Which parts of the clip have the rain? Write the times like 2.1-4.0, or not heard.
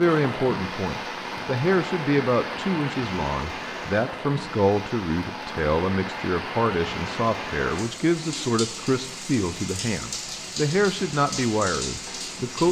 0.0-12.6.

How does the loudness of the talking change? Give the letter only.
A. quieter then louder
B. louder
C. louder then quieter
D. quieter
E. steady
E.